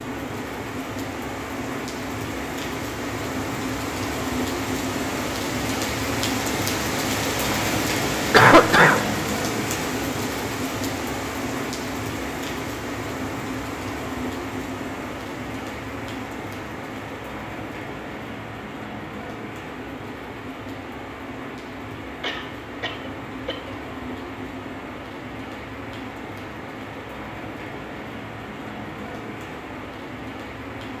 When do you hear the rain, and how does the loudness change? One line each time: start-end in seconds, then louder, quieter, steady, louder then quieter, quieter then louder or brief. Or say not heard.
0.0-30.9 quieter.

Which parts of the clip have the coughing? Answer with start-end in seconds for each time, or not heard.
8.3-9.1, 22.2-23.8.